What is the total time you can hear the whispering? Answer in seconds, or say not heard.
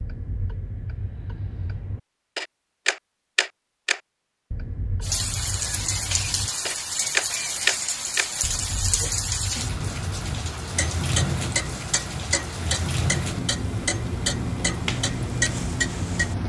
not heard.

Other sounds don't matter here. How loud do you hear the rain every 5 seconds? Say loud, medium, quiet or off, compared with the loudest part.
off, loud, loud, loud.